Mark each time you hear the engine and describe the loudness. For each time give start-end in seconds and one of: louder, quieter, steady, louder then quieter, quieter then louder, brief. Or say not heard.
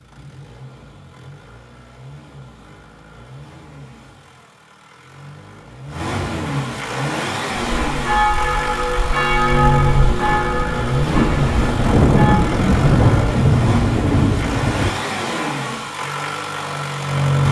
0.0-17.4 louder.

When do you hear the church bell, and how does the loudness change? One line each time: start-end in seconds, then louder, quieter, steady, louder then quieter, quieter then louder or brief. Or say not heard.
7.5-12.6 quieter.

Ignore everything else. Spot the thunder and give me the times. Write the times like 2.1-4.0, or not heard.
11.1-14.9.